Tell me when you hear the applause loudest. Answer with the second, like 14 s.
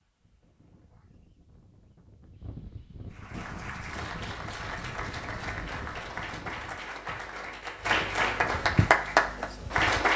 9 s.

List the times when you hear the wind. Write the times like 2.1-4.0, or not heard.
0.0-6.8.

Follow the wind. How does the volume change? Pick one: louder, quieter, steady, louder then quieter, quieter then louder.
louder.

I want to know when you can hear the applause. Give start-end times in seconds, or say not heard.
3.1-10.1.